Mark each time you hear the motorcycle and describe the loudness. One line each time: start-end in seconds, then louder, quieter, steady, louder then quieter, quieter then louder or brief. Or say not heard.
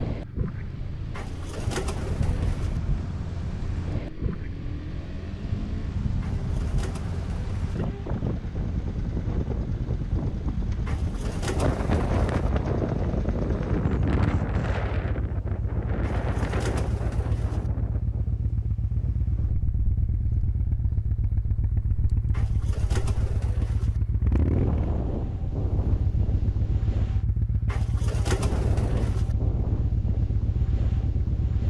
0.1-31.6 louder.